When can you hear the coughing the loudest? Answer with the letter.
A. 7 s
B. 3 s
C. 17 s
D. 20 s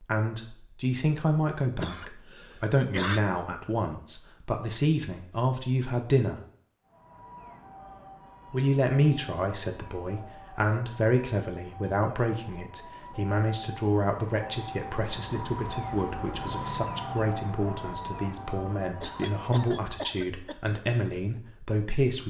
B.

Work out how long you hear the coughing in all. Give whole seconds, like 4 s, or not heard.
3 s.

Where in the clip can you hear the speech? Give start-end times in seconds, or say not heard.
0.0-6.4, 8.5-22.2.